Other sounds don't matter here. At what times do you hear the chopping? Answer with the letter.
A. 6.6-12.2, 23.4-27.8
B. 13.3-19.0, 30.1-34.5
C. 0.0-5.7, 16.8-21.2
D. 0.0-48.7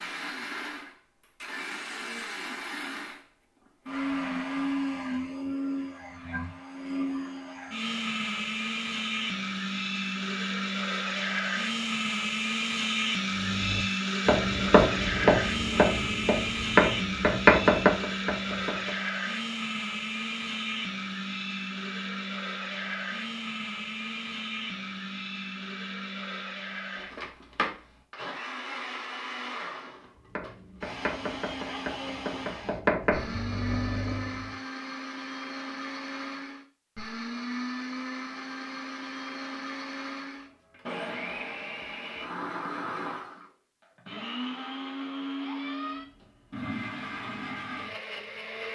B.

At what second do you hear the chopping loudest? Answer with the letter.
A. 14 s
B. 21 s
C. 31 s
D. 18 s
D.